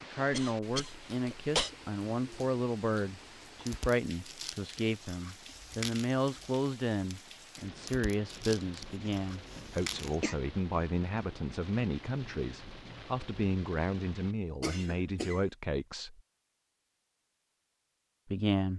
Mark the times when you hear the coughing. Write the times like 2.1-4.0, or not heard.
0.3-1.7, 9.6-10.3, 14.6-15.4.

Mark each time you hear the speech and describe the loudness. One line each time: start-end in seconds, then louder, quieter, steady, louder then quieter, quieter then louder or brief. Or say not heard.
0.0-16.2 steady
18.2-18.7 brief.